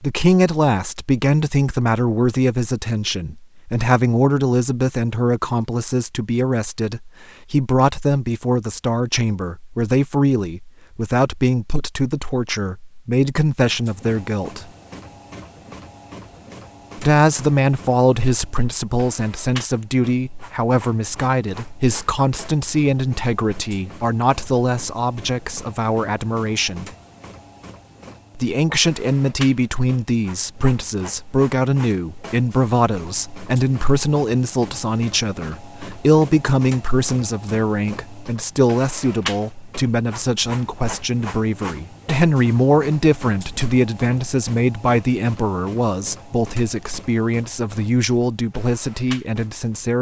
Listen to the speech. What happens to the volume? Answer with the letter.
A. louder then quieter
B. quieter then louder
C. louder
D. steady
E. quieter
D.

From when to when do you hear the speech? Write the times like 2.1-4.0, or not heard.
0.0-14.7, 16.9-26.9, 28.4-49.9.